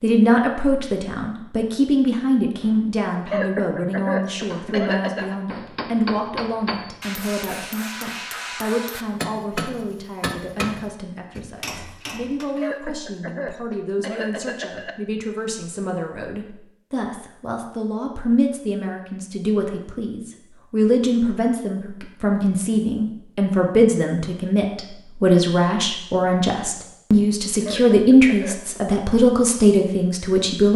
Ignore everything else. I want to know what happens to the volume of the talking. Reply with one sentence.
The volume of the talking goes down, then up.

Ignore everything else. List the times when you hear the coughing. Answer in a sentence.
You can hear the coughing from 3.2 to 5.3 s, from 12.6 to 14.9 s and from 27.6 to 28.8 s.